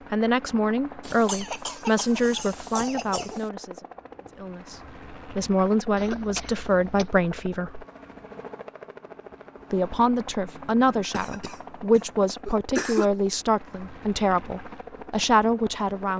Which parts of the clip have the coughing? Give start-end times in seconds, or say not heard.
1.0-3.5, 6.0-7.1, 11.1-13.1.